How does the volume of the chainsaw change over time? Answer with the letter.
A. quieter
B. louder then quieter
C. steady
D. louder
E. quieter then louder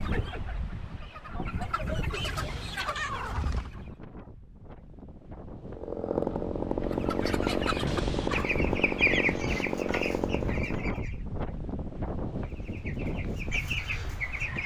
C.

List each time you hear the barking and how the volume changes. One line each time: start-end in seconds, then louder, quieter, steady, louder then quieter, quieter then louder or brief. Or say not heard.
not heard.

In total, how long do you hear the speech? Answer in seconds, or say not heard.
not heard.